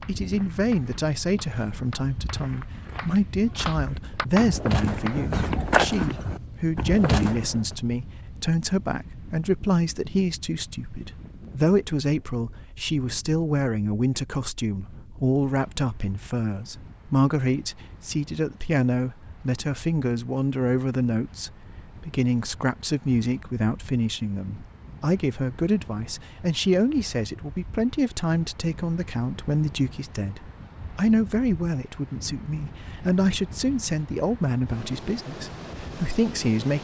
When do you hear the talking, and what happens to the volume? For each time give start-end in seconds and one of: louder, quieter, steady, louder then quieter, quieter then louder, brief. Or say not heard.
0.1-36.7 steady.